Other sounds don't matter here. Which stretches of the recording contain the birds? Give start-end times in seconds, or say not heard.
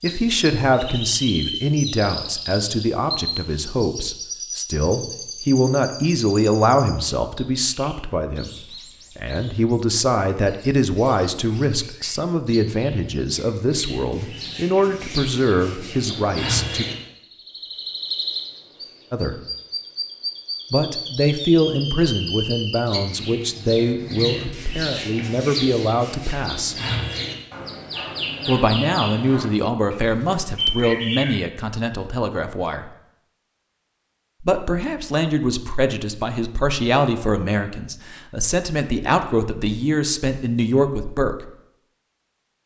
0.0-31.4.